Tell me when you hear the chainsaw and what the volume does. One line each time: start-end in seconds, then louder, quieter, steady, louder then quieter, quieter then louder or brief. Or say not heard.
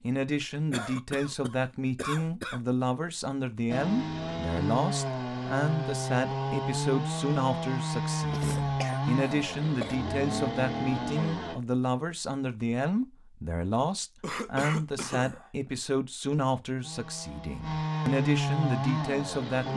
3.6-11.6 steady
16.8-19.7 brief.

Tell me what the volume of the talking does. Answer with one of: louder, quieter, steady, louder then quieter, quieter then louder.
steady.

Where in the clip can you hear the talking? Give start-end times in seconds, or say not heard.
0.0-19.7.